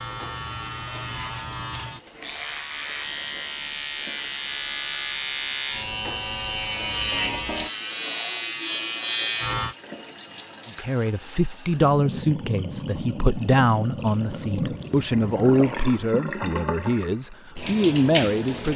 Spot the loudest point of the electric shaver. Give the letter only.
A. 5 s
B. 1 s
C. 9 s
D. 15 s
C.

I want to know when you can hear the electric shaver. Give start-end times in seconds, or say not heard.
0.0-9.8.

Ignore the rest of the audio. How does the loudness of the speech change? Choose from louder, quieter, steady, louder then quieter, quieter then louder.
steady.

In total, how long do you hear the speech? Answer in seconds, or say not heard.
8 s.